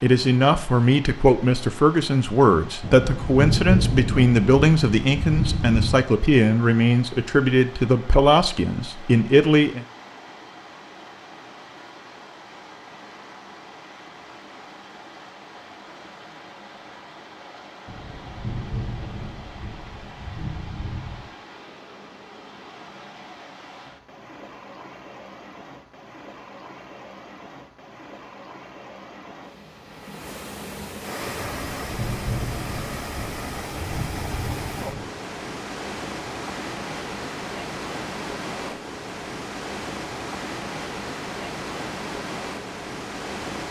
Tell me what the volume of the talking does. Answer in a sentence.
The volume of the talking stays about the same.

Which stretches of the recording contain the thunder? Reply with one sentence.
You can hear the thunder from 2.8 to 6.0 s, from 17.9 to 21.3 s and from 31.4 to 35.0 s.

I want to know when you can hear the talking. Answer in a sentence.
The talking can be heard from 0.0 to 9.8 s.